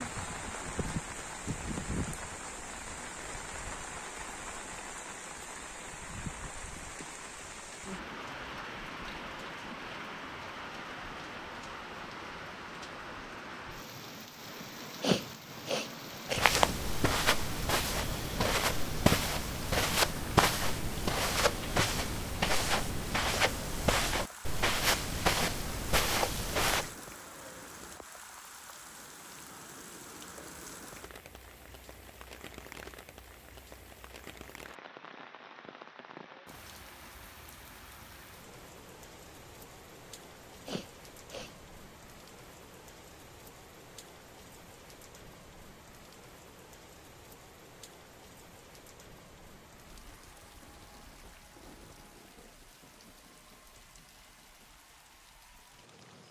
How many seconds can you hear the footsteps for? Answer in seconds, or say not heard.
11 s.